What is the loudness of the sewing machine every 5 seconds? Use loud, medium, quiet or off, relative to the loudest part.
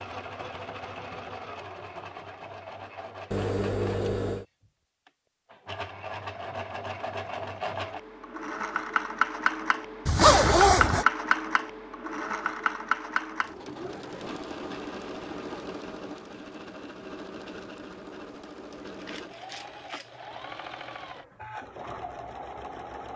medium, loud, loud, medium, medium.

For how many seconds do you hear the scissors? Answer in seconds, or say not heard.
2 s.